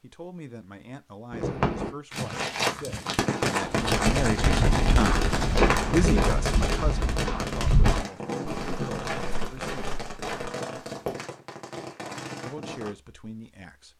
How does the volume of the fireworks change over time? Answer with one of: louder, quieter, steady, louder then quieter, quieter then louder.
quieter.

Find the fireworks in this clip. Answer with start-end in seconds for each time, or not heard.
1.3-12.9.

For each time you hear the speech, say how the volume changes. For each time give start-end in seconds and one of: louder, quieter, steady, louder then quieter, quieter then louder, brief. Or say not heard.
0.0-9.9 louder then quieter
12.4-13.9 brief.